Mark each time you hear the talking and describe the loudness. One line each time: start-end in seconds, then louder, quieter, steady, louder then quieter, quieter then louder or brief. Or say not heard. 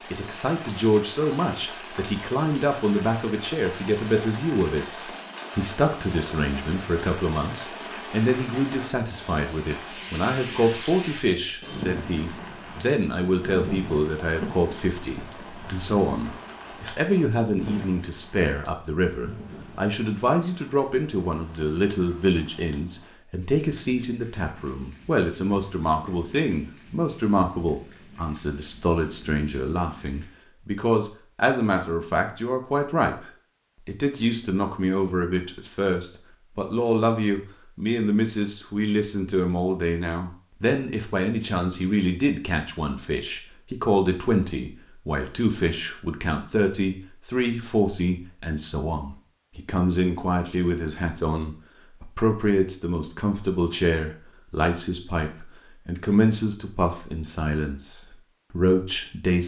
0.1-59.4 steady.